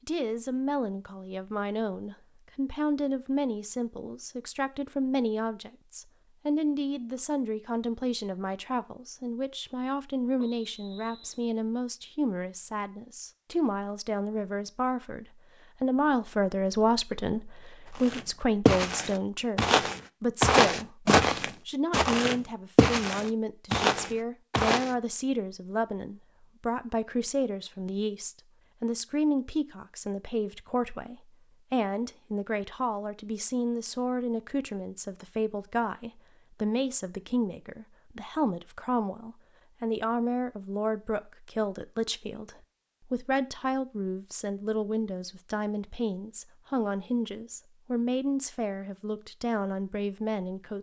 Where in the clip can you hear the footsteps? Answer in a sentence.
You can hear the footsteps from 17.9 to 24.9 s.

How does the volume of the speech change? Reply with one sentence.
The loudness of the speech stays about the same.